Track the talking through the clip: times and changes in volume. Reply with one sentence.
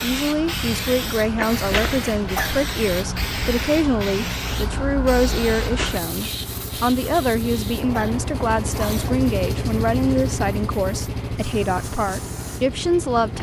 The talking can be heard from 0.0 to 13.3 s, at a steady volume.